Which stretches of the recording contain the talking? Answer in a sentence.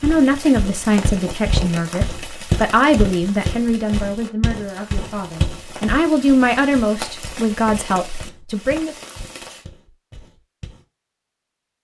You can hear the talking from 0.0 to 8.9 s.